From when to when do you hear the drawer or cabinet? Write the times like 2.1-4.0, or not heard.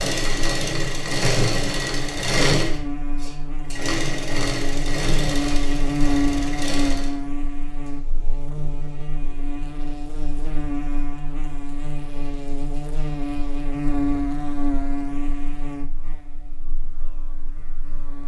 not heard.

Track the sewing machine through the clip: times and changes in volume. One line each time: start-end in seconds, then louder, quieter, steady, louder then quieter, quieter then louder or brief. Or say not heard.
0.0-7.2 quieter.